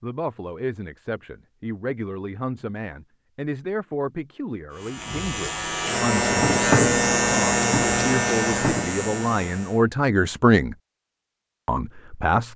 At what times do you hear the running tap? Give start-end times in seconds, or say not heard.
not heard.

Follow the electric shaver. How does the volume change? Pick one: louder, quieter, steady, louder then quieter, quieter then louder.
louder then quieter.